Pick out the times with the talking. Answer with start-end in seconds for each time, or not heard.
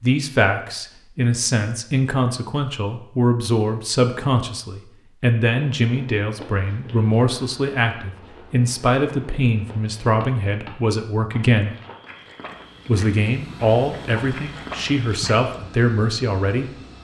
0.0-11.7, 12.8-16.7.